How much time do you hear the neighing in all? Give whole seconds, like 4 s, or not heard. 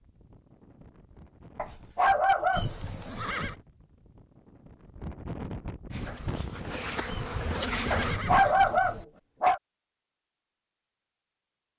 3 s.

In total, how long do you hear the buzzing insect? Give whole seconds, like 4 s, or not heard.
2 s.